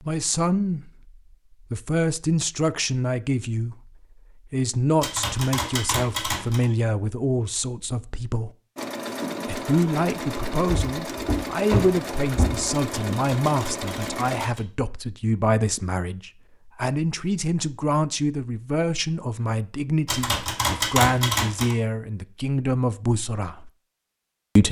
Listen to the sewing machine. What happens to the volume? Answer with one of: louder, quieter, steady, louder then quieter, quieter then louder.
steady.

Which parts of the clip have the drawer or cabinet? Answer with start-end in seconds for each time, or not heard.
10.7-12.7.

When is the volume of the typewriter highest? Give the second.
21 s.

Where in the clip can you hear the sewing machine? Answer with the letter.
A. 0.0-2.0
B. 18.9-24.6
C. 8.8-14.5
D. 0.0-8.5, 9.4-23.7
C.